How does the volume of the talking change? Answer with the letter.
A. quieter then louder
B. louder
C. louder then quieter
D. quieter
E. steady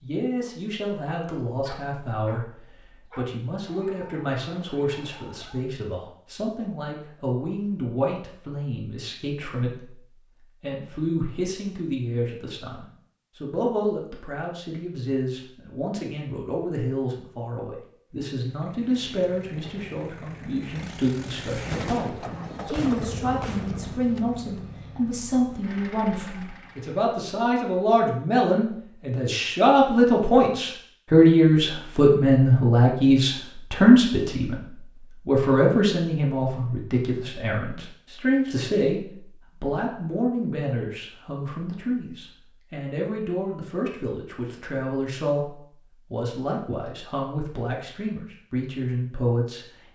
C.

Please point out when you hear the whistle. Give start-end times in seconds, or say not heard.
not heard.